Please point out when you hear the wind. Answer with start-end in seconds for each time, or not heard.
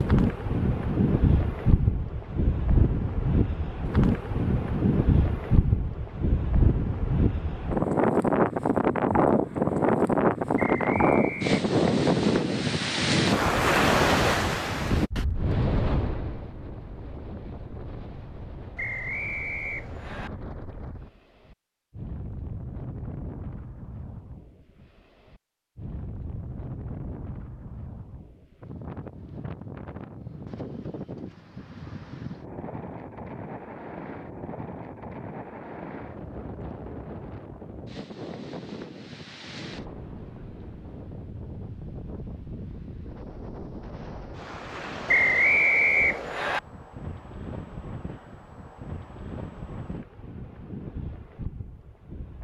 0.0-52.3.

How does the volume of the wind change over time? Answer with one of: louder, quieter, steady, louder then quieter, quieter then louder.
quieter.